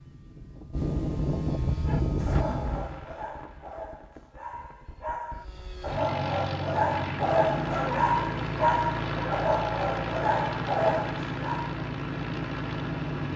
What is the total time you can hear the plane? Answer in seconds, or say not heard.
11 s.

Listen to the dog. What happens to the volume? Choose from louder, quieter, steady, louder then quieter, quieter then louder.
louder.